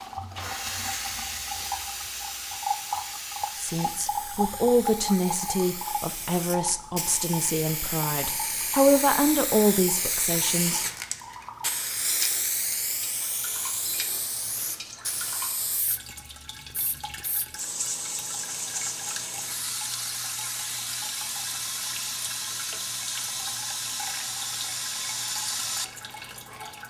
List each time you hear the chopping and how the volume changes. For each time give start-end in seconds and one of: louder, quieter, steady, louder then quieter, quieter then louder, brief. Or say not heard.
not heard.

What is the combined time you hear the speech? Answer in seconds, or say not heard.
7 s.